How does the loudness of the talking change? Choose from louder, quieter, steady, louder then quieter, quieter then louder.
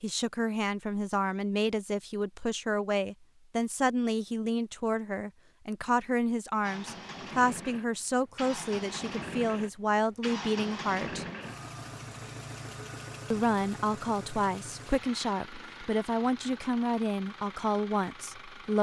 steady.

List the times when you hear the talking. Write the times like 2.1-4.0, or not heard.
0.0-11.2, 13.3-18.7.